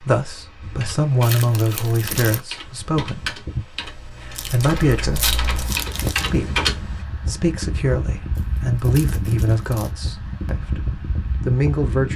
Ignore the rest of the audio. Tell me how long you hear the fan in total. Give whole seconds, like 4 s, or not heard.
12 s.